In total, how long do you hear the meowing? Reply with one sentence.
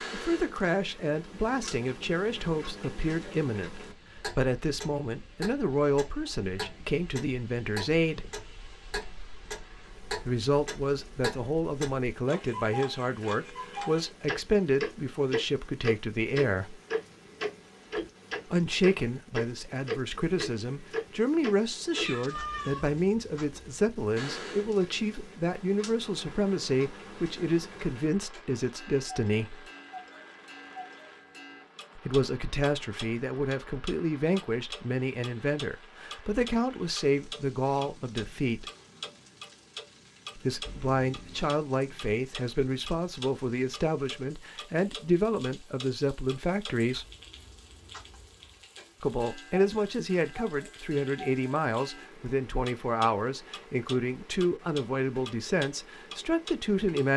You can hear the meowing for 2 seconds altogether.